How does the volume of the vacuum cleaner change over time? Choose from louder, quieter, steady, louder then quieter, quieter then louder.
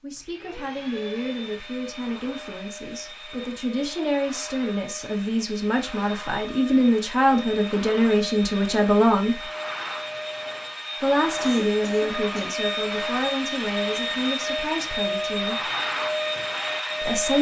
louder.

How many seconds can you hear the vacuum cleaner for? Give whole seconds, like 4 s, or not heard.
17 s.